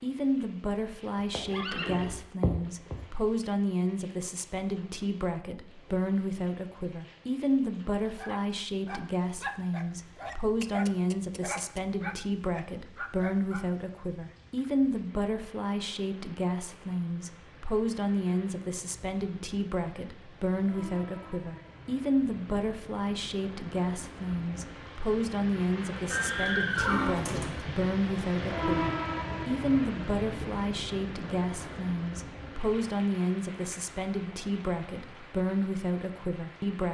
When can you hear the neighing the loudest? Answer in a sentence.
The loudest moment of the neighing is at 27 seconds.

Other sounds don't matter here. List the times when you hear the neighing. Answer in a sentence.
The neighing can be heard from 1.1 to 3.0 s and from 26.1 to 27.6 s.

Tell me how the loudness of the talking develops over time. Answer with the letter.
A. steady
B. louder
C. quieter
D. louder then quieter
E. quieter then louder
A.